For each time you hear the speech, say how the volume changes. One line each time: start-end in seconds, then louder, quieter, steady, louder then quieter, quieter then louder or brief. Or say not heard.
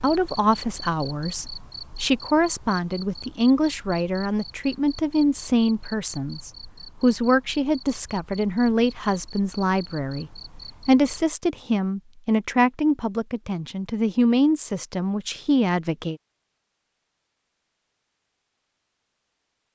0.0-16.2 steady.